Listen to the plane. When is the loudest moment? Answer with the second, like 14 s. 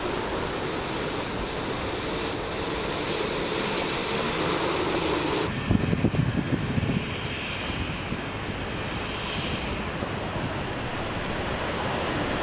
5 s.